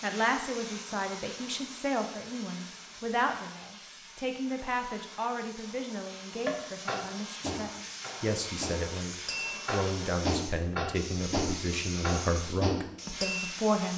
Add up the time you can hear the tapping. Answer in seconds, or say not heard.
7 s.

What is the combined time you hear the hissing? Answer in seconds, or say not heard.
14 s.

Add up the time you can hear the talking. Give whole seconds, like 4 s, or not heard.
14 s.